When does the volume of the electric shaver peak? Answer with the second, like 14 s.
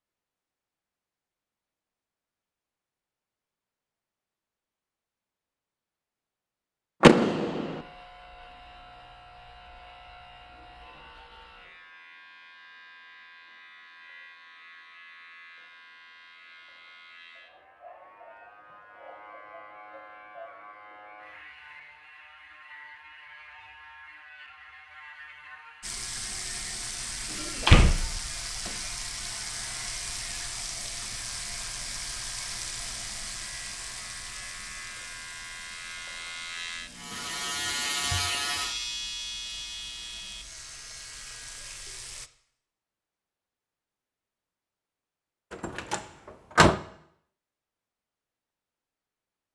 38 s.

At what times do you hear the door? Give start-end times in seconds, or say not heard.
7.0-7.8, 27.4-28.7, 45.5-46.8.